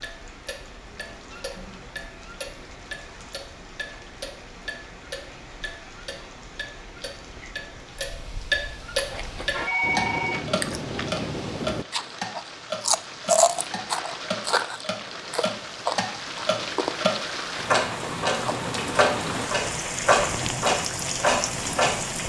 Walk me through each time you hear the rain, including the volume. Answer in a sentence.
The rain can be heard from 0.0 to 22.2 s, getting louder.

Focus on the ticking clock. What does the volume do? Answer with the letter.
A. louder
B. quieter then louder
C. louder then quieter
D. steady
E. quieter
A.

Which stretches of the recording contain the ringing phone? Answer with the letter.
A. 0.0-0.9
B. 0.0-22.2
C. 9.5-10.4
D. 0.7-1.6
C.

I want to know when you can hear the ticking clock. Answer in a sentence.
The ticking clock can be heard from 0.0 to 22.2 s.